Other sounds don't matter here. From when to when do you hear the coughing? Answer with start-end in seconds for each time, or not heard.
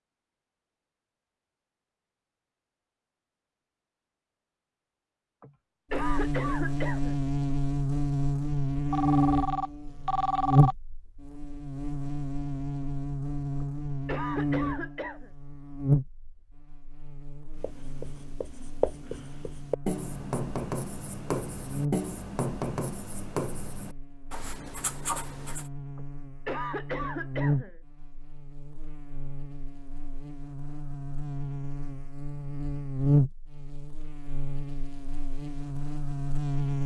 5.4-7.2, 13.6-15.3, 25.9-27.8.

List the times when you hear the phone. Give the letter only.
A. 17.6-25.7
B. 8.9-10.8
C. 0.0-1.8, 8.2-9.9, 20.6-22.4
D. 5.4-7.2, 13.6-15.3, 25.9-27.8
B.